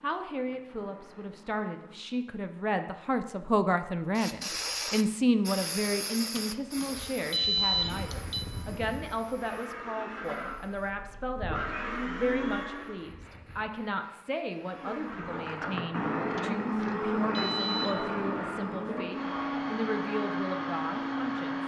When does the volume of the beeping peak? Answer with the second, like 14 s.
8 s.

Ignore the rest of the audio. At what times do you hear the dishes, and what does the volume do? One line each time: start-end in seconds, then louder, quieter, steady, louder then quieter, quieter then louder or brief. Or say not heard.
not heard.